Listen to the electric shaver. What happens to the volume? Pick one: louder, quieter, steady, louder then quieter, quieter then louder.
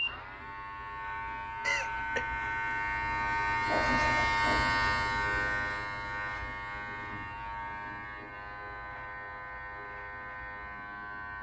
louder then quieter.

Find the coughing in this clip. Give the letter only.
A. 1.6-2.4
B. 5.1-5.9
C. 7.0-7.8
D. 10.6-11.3
A.